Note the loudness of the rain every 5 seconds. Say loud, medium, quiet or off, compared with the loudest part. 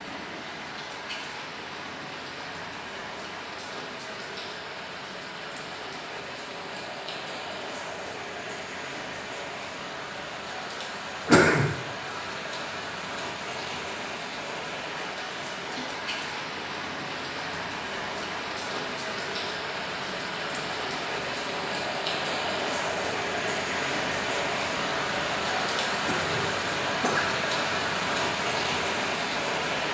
medium, medium, medium, medium, loud, loud.